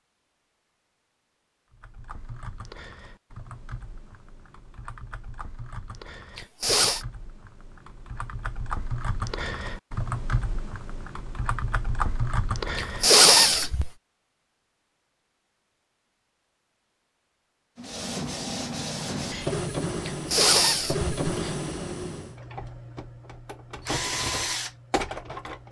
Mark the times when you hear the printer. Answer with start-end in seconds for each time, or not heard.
17.8-25.6.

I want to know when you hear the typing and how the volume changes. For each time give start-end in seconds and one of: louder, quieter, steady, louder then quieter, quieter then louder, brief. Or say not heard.
1.7-13.7 louder.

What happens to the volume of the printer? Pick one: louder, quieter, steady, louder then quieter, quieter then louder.
quieter then louder.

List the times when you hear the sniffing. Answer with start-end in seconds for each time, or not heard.
6.3-7.0, 12.8-13.9, 20.1-21.6.